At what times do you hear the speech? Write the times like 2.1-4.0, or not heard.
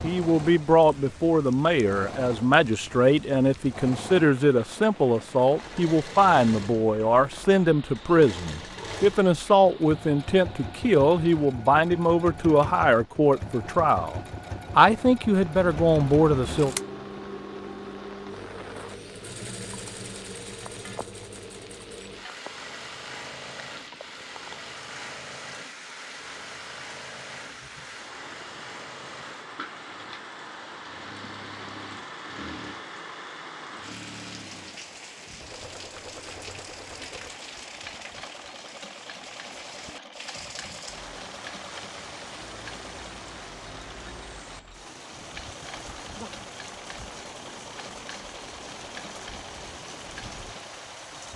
0.0-16.8.